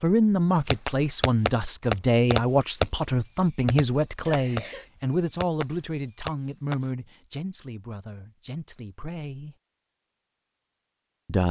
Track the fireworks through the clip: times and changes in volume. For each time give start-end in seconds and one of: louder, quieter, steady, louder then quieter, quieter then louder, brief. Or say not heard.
0.7-6.9 quieter.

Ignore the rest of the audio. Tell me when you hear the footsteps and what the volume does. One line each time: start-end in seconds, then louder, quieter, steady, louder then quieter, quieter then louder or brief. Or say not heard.
not heard.